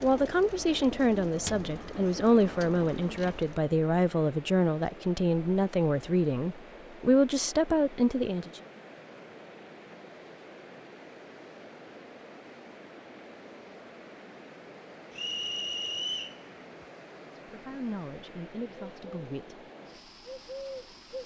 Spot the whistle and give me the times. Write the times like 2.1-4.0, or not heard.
15.2-16.4.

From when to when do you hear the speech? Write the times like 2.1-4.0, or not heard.
0.0-8.6, 17.4-19.6.